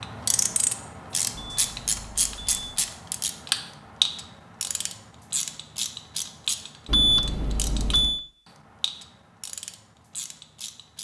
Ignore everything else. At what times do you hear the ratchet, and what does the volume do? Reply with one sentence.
You can hear the ratchet from 0.0 to 10.9 s, getting quieter.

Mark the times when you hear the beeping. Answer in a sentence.
The beeping can be heard from 1.3 to 2.9 s and from 6.8 to 8.2 s.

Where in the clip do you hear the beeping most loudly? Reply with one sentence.
The loudest moment of the beeping is at 7 seconds.